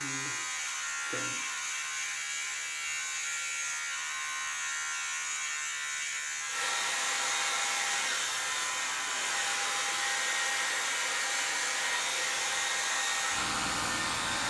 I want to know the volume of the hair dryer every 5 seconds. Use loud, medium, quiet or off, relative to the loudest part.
quiet, loud, loud.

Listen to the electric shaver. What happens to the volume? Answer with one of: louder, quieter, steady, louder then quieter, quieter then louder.
steady.